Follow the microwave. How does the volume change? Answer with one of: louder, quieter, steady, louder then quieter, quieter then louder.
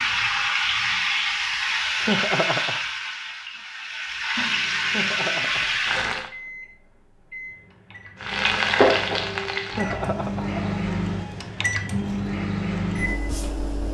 louder.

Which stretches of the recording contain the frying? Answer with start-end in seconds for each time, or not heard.
0.0-6.3, 8.2-11.6.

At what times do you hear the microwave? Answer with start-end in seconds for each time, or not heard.
4.3-13.8.